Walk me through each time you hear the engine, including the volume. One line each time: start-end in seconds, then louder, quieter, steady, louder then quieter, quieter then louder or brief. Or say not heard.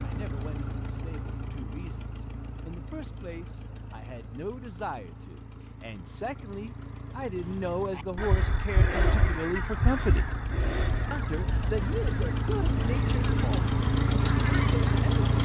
0.0-15.4 quieter then louder.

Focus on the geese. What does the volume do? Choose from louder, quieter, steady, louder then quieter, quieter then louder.
quieter.